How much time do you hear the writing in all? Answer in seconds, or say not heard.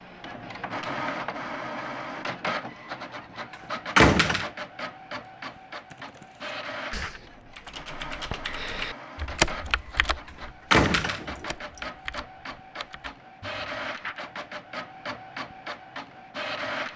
not heard.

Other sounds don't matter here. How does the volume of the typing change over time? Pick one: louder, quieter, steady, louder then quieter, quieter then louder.
louder then quieter.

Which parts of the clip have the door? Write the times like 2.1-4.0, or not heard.
4.0-4.5, 10.7-11.4.